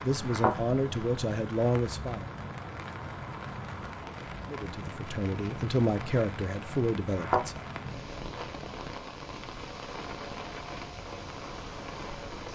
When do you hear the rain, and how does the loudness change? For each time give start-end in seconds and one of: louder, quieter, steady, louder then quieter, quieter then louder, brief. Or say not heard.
0.0-12.4 steady.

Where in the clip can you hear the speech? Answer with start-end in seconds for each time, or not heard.
0.0-2.3, 4.5-7.7.